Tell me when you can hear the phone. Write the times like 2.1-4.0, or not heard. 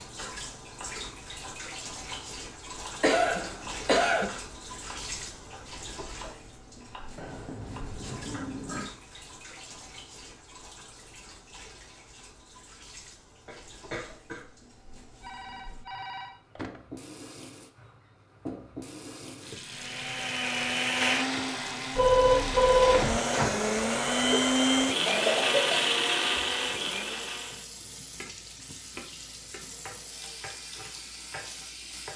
7.2-8.9, 15.2-16.8, 21.9-23.2.